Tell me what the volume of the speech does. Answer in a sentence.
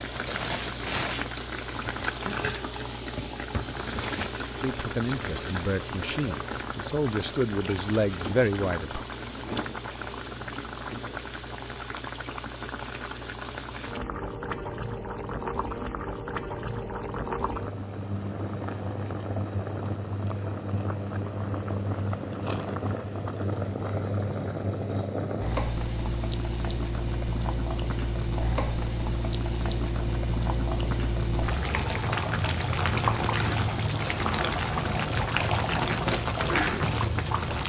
The volume of the speech goes up.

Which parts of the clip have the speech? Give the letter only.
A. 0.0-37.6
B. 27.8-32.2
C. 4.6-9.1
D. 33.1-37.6
C.